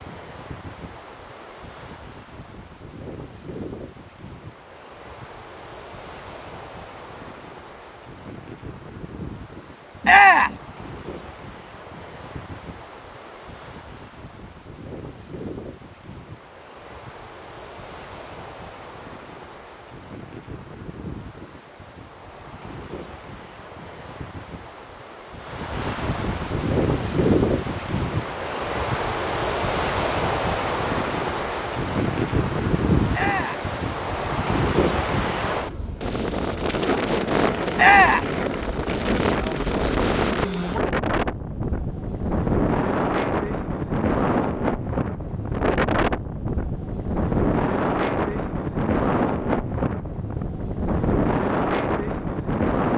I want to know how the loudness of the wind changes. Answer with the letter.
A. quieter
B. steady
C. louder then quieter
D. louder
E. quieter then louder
D.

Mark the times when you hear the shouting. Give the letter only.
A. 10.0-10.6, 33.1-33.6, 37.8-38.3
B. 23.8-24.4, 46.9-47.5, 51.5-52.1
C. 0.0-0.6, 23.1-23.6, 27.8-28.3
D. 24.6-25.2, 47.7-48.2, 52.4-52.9
A.